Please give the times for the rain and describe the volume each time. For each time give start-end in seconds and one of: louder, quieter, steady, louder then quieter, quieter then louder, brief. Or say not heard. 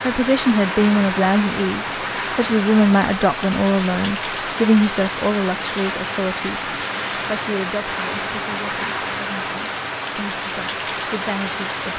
0.0-11.9 steady.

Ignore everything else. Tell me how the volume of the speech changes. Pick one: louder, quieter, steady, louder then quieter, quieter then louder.
quieter.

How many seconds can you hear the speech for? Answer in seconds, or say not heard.
12 s.